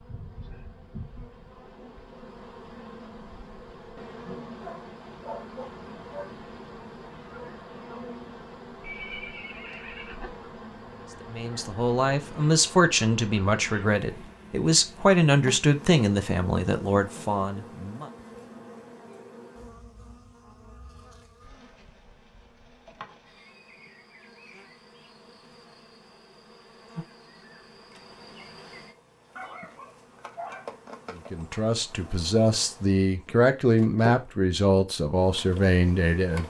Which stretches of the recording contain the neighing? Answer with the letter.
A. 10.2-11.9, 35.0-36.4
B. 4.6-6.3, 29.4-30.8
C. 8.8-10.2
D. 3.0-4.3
C.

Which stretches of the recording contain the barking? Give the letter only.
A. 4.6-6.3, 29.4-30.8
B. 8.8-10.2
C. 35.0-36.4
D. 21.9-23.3
A.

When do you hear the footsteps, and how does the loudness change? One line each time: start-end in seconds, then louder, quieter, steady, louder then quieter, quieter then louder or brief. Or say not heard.
not heard.